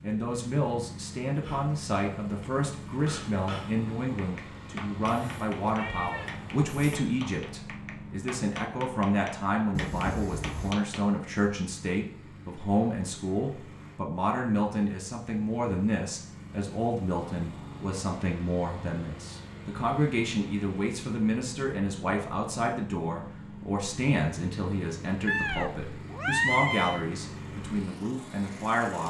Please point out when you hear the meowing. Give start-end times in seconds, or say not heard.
5.0-7.0, 9.8-10.8, 25.2-27.1.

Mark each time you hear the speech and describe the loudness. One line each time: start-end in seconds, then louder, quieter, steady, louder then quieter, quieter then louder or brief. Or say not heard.
0.0-29.0 steady.